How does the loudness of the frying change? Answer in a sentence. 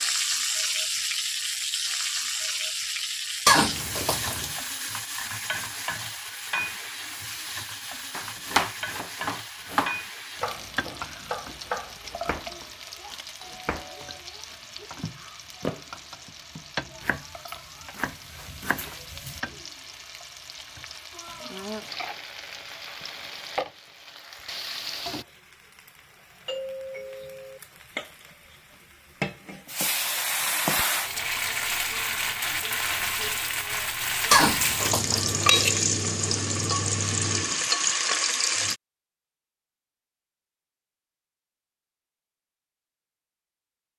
The volume of the frying goes down, then up.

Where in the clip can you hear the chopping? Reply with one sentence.
The chopping can be heard from 8.1 to 19.4 s.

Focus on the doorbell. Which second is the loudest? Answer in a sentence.
The loudest moment of the doorbell is at 27 seconds.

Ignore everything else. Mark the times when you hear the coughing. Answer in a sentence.
The coughing can be heard from 3.5 to 4.5 s and from 34.3 to 35.6 s.